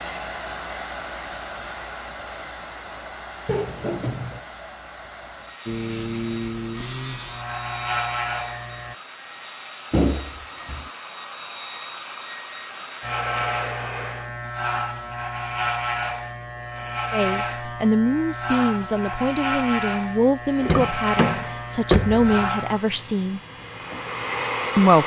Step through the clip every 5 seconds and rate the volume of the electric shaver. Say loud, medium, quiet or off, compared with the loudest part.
off, loud, loud, loud, loud.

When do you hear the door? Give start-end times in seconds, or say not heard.
3.5-4.5, 9.9-10.9, 20.6-22.3.